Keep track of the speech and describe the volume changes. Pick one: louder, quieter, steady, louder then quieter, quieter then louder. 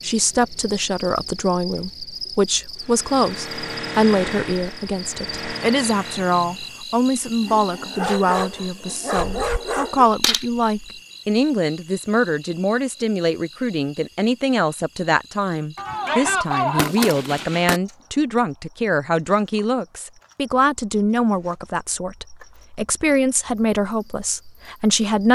steady.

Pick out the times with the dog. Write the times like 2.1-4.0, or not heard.
7.4-10.1.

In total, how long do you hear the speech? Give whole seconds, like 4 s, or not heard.
25 s.